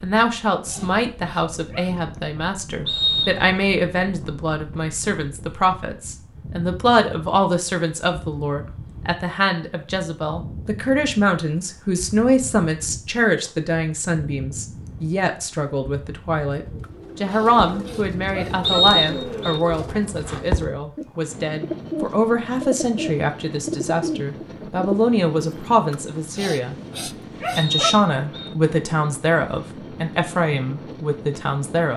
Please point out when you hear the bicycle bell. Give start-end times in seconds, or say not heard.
not heard.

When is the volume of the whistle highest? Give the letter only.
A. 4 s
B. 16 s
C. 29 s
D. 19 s
D.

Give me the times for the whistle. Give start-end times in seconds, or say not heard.
2.9-3.5, 18.6-19.6, 27.6-28.5.